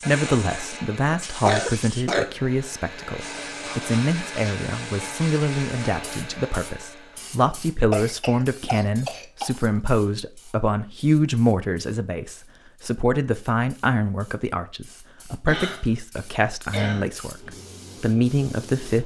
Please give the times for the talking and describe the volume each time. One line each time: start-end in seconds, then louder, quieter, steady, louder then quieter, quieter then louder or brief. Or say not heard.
0.1-19.0 steady.